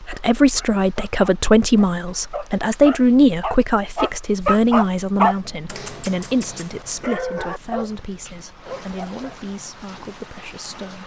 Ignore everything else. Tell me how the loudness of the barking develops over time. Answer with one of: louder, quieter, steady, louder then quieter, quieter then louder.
louder then quieter.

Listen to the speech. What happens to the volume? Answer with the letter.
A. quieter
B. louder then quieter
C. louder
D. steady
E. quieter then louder
A.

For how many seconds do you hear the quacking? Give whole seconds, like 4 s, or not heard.
not heard.